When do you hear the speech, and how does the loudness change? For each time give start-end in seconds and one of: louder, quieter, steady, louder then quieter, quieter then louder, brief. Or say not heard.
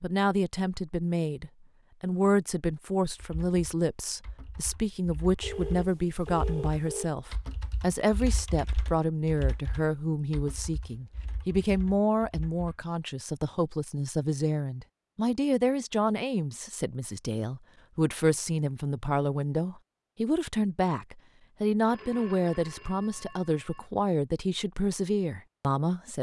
0.0-26.1 steady.